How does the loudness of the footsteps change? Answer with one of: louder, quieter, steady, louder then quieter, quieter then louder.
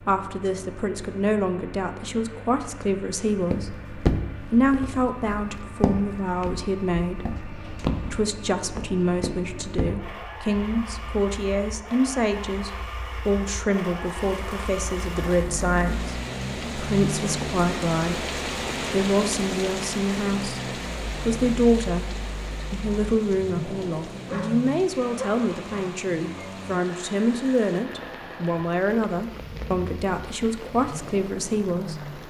quieter.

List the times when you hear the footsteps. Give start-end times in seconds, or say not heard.
3.4-11.2.